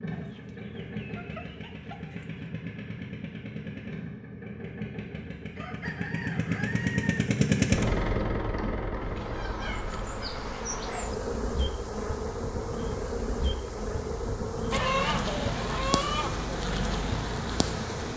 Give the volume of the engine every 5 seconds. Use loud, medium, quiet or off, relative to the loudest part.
medium, loud, quiet, medium.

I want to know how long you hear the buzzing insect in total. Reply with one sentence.
The buzzing insect can be heard for 9 seconds in total.